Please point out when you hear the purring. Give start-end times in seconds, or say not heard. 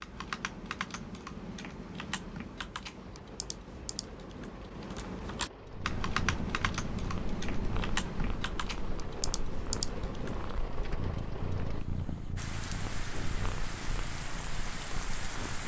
5.7-15.6.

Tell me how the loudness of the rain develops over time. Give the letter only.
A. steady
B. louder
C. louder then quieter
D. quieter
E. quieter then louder
B.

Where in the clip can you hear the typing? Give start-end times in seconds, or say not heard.
0.0-10.6.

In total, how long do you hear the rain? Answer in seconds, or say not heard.
13 s.